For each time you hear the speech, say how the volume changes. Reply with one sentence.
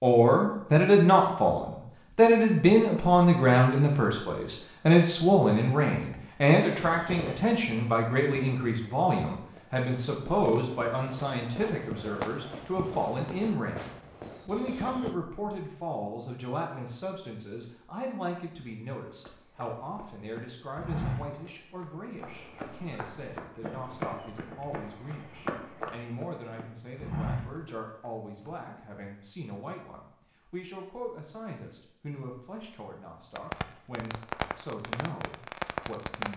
The speech can be heard from 0.0 to 36.3 s, getting quieter.